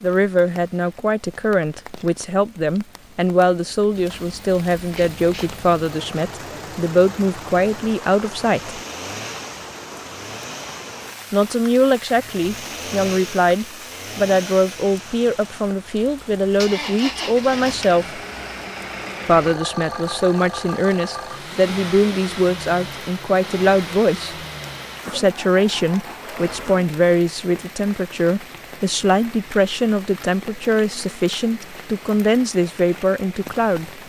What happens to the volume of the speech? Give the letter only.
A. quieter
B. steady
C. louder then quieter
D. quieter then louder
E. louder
B.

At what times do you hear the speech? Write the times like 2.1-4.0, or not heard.
0.0-8.8, 11.3-18.2, 19.2-24.4, 25.1-33.9.